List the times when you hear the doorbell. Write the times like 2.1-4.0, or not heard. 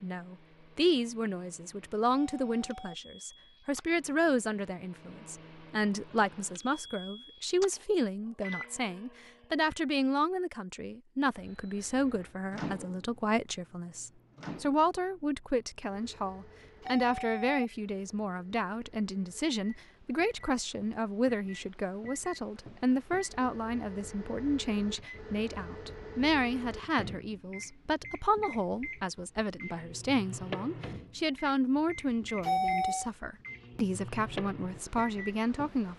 2.1-3.0, 16.8-17.6, 32.4-33.1.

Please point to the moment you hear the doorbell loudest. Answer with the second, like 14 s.
33 s.